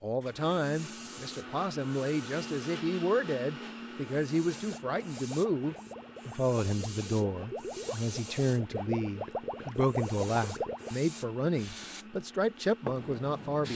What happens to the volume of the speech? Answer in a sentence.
The volume of the speech stays about the same.